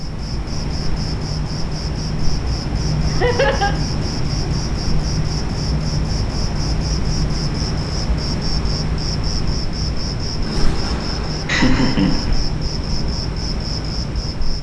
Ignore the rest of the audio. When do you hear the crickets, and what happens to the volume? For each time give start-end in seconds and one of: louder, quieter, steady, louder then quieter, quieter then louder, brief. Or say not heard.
0.0-14.5 steady.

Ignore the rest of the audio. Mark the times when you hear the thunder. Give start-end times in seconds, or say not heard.
10.4-12.4.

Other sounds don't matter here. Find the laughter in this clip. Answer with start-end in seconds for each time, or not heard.
3.1-3.8, 11.4-12.3.